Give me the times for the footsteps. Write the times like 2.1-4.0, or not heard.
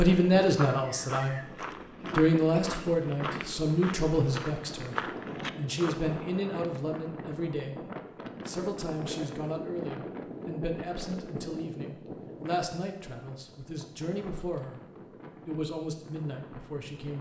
0.6-6.2.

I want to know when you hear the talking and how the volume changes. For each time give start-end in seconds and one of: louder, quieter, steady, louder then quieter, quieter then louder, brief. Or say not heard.
0.0-1.6 brief
2.1-17.1 quieter.